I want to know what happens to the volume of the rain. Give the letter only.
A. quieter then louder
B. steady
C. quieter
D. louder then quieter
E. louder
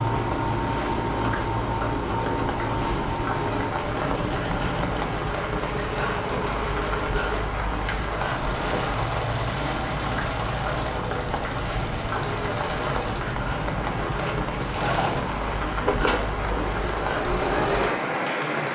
B.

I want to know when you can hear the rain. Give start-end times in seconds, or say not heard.
0.0-18.6.